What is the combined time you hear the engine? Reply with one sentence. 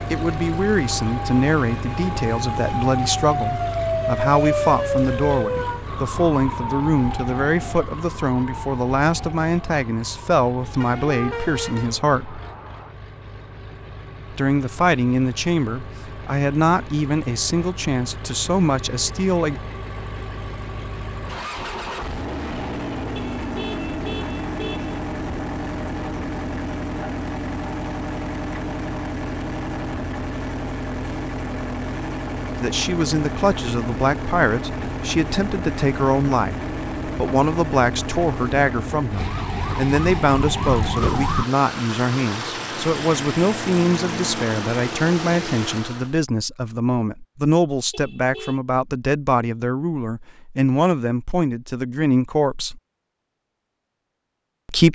The engine can be heard for 46 seconds in total.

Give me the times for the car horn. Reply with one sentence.
The car horn can be heard from 10.8 to 11.9 s, from 23.1 to 25.0 s and from 47.9 to 48.6 s.